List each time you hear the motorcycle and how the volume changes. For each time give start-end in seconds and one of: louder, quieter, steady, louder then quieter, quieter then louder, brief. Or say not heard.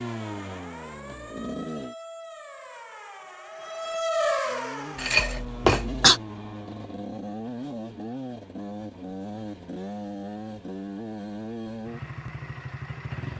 0.0-1.9 brief
4.4-13.3 steady.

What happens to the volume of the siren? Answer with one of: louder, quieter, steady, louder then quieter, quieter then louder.
louder.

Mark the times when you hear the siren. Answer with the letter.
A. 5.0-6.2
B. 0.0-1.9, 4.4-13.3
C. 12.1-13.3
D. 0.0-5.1
D.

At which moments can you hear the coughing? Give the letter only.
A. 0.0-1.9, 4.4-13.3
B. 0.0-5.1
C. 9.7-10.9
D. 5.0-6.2
D.